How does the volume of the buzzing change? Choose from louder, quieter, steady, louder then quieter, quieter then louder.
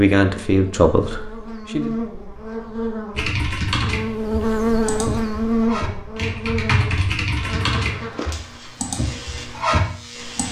louder then quieter.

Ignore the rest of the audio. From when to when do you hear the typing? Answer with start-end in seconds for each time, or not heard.
3.1-10.4.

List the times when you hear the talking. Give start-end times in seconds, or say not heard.
0.0-1.9.